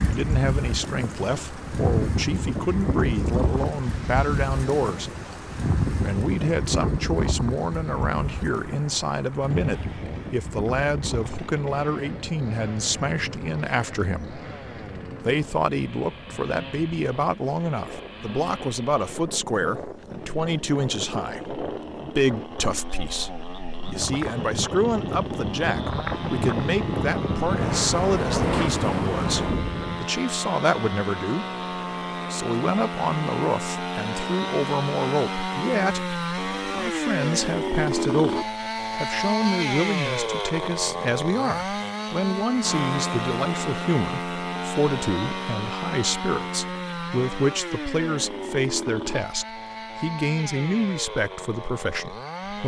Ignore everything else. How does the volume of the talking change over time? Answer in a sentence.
The loudness of the talking stays about the same.